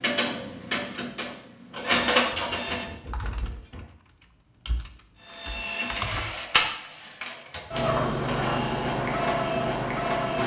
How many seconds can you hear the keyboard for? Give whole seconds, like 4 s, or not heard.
3 s.